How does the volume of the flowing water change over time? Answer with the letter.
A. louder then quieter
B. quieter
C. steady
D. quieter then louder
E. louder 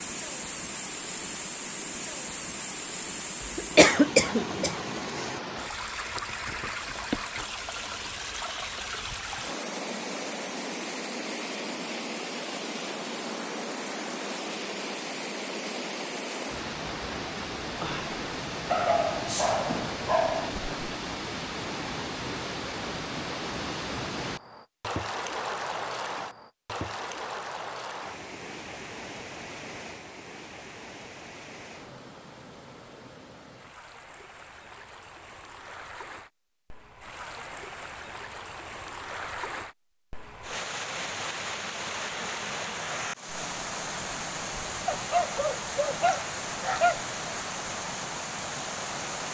D.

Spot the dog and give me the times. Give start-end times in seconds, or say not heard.
18.6-20.5, 44.9-47.0.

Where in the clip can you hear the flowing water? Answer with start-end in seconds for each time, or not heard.
0.0-49.2.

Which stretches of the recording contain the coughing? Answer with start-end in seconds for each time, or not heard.
3.4-4.8.